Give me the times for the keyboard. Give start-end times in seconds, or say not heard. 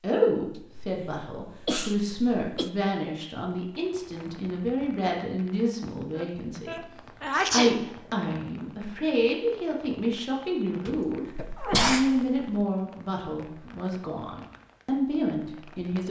not heard.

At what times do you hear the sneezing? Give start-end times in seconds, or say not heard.
0.6-2.7, 6.2-8.2, 10.8-12.4.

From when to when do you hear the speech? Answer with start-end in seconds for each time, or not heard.
0.0-16.0.